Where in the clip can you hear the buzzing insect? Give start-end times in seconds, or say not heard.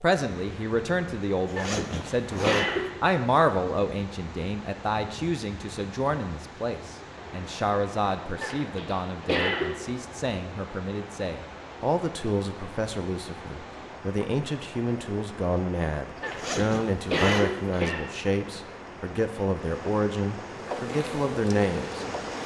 20.5-22.4.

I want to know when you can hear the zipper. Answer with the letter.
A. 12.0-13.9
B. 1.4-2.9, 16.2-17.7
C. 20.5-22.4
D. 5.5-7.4
B.